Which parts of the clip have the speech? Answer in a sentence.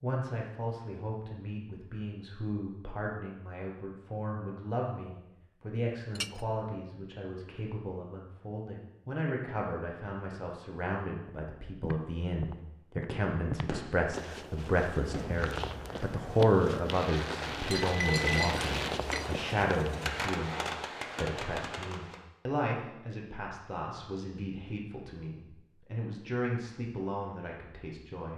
The speech can be heard from 0.0 to 28.3 s.